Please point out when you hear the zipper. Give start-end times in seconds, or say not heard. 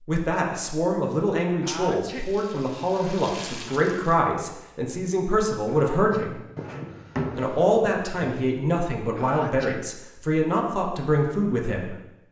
not heard.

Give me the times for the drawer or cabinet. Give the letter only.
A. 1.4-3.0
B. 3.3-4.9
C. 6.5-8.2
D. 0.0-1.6
C.